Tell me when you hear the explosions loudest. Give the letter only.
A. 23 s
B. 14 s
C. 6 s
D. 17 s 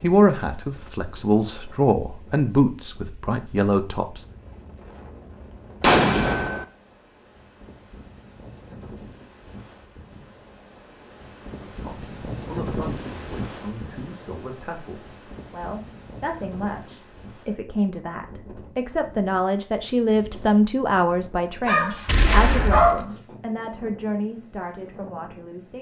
C.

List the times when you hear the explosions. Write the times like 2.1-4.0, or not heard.
5.8-6.7, 22.1-23.1.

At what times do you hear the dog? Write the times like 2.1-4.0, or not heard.
21.6-23.0.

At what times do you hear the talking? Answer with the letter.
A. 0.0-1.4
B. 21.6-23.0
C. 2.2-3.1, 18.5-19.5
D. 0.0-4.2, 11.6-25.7
D.